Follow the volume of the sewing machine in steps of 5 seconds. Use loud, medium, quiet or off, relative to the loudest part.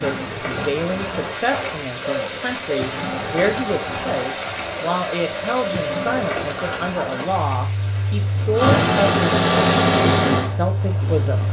medium, loud, loud.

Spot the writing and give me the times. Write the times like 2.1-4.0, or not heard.
not heard.